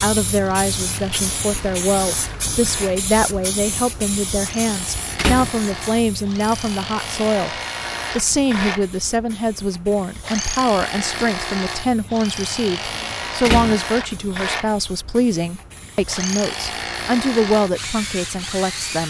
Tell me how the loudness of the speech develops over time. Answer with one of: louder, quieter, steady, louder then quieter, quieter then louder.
steady.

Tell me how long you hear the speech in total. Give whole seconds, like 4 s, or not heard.
19 s.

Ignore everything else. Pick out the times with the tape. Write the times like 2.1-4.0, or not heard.
not heard.